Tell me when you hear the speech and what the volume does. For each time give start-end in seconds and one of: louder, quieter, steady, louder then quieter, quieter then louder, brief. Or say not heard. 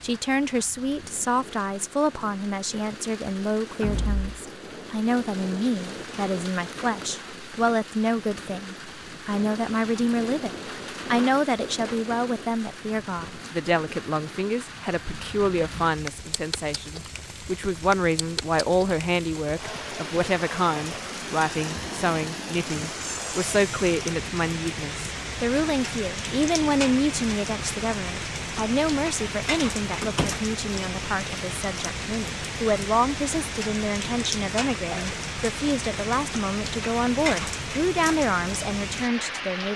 0.0-39.7 steady.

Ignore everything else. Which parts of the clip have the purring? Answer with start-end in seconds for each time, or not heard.
not heard.